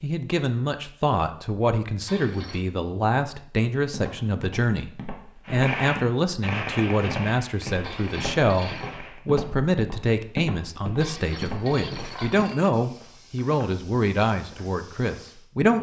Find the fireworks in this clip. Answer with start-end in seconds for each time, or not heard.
5.5-9.2.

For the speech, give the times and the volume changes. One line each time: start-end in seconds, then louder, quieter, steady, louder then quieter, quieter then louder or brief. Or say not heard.
0.0-15.7 steady.